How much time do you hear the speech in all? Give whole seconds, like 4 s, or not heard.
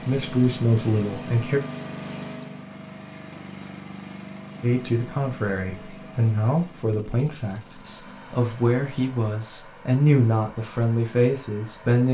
9 s.